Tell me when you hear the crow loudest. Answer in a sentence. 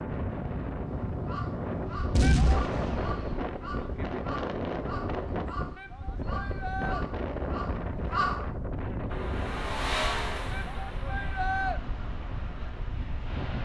The volume of the crow peaks at 8 seconds.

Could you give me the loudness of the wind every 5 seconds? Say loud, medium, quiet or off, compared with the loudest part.
loud, loud, medium.